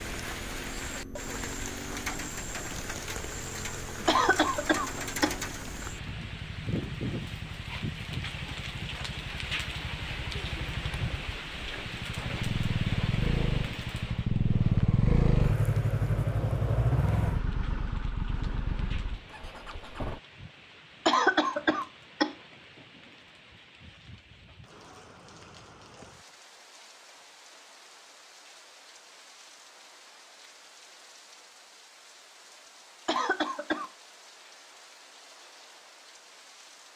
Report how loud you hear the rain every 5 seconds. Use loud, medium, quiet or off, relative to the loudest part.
loud, loud, loud, quiet, quiet, quiet, quiet, quiet.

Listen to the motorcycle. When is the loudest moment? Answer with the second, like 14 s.
15 s.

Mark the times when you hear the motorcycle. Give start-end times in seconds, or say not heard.
0.0-20.2.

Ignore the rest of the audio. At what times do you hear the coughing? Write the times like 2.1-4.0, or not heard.
4.0-5.3, 21.1-22.4, 33.0-33.9.